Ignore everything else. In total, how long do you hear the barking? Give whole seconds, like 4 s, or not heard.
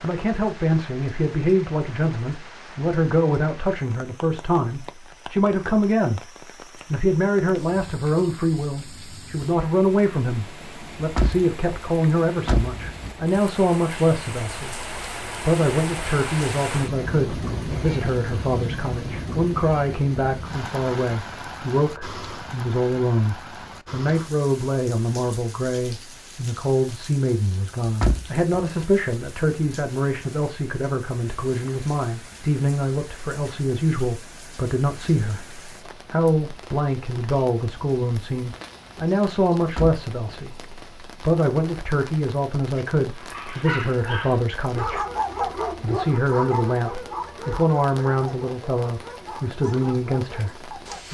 8 s.